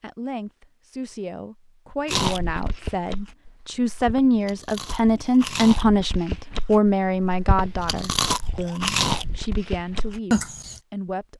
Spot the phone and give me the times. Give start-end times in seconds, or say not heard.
not heard.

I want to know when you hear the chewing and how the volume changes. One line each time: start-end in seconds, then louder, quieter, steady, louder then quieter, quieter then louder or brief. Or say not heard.
2.0-10.8 louder.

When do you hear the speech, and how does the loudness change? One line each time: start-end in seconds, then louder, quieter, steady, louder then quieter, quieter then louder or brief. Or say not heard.
0.0-11.3 louder then quieter.